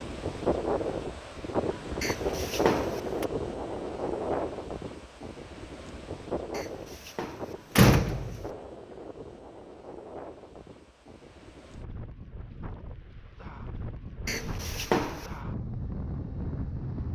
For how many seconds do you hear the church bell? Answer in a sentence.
The church bell can't be heard in this clip.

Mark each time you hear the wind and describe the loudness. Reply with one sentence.
The wind can be heard from 0.0 to 17.0 s, getting quieter then louder.